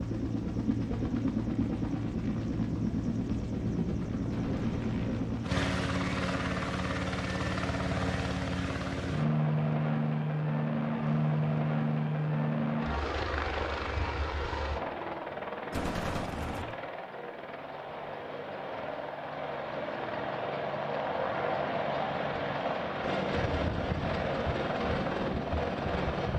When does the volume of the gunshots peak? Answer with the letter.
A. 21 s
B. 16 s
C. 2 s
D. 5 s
B.